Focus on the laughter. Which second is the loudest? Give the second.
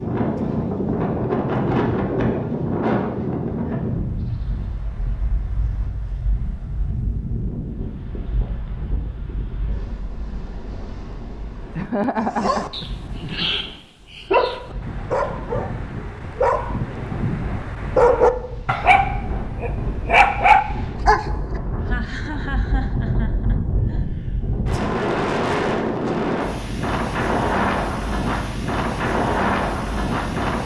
12 s.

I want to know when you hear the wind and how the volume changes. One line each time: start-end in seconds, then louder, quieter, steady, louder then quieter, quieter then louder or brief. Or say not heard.
0.0-30.6 quieter then louder.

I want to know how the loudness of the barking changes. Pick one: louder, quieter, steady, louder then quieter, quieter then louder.
louder.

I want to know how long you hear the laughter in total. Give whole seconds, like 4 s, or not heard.
4 s.